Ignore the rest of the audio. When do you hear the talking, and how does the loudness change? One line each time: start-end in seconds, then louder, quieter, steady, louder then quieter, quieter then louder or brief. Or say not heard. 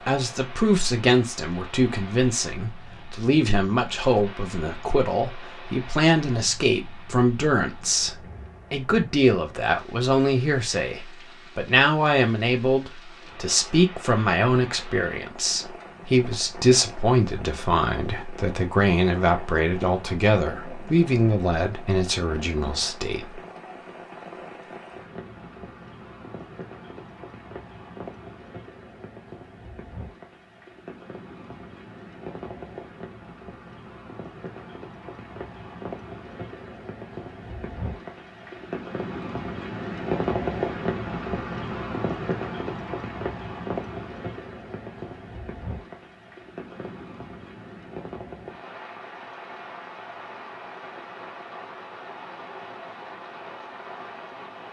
0.0-23.4 steady.